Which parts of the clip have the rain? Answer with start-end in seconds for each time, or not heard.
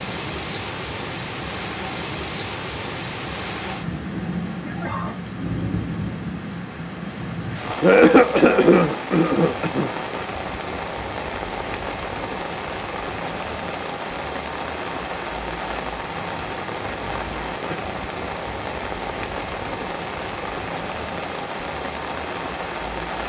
0.0-23.2.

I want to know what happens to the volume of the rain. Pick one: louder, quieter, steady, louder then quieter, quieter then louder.
steady.